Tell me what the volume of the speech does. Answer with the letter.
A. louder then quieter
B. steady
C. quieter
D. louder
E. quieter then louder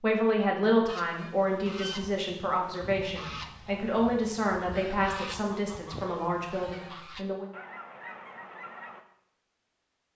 C.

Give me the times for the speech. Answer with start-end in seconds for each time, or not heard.
0.0-7.5.